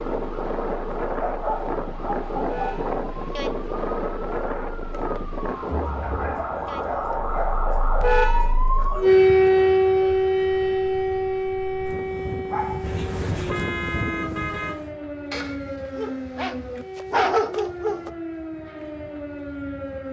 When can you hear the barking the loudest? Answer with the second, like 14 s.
17 s.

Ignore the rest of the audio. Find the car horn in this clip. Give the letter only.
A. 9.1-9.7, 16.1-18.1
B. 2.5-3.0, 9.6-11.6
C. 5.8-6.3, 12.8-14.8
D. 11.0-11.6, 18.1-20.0
C.